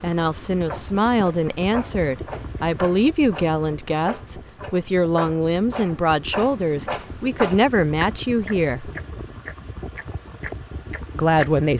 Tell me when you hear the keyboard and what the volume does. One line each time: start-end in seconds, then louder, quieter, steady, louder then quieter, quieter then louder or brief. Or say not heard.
not heard.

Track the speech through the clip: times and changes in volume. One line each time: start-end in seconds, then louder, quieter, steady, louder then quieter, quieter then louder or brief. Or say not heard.
0.0-8.9 steady
11.2-11.7 brief.